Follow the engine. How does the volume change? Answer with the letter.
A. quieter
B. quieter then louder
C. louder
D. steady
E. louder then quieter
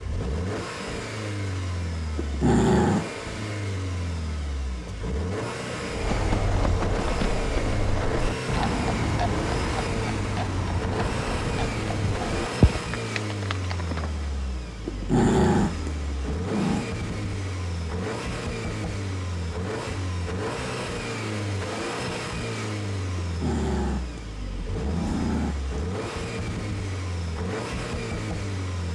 D.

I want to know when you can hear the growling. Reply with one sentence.
You can hear the growling from 2.1 to 3.2 s, from 14.8 to 16.9 s and from 23.2 to 25.8 s.